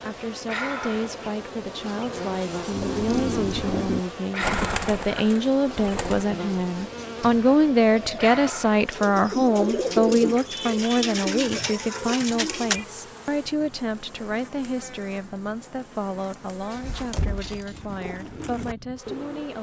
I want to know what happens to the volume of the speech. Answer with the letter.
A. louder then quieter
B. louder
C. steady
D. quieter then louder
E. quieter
A.